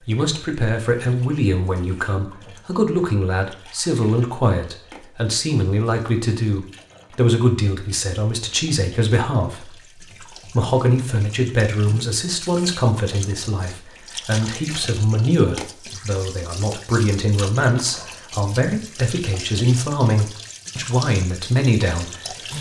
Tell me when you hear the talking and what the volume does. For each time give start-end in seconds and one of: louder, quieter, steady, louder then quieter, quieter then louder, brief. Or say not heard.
0.0-22.4 steady.